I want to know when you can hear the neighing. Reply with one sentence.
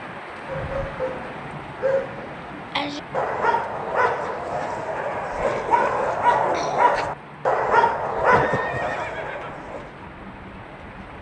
The neighing can be heard from 8.3 to 9.7 s.